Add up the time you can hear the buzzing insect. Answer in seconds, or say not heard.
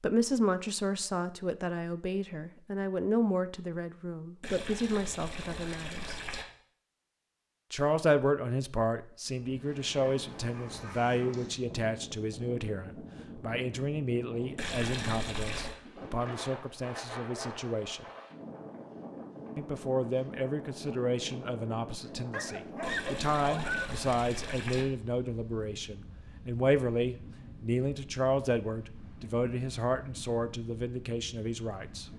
not heard.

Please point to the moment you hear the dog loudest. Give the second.
24 s.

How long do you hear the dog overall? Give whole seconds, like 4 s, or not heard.
3 s.